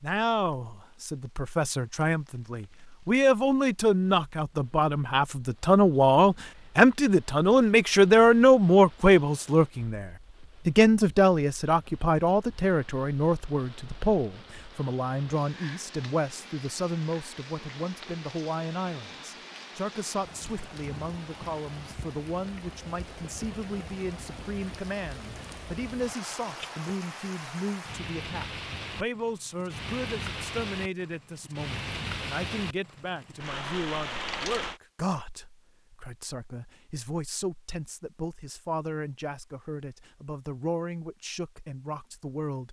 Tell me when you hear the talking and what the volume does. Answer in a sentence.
You can hear the talking from 0.0 to 42.6 s, getting quieter.